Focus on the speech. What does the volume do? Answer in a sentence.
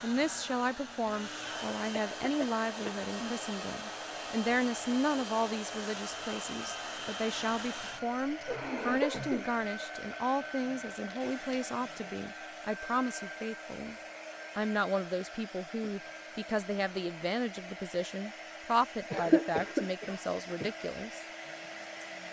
The volume of the speech stays about the same.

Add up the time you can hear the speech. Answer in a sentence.
The speech can be heard for 21 seconds in total.